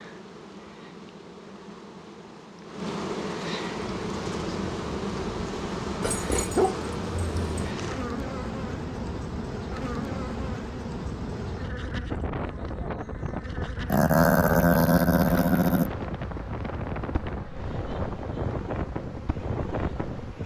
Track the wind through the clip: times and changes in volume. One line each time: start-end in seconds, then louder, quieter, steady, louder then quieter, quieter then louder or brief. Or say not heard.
3.8-20.4 louder.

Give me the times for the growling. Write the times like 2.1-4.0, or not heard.
6.0-7.5, 13.9-15.9.